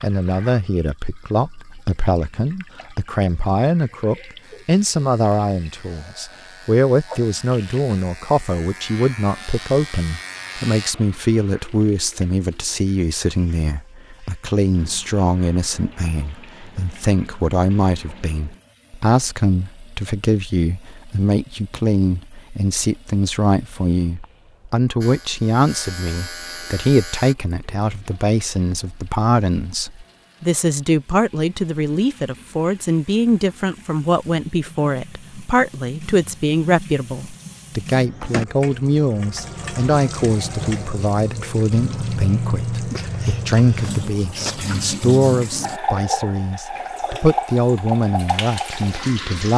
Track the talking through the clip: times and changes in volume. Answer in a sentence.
You can hear the talking from 0.0 to 49.5 s, at a steady volume.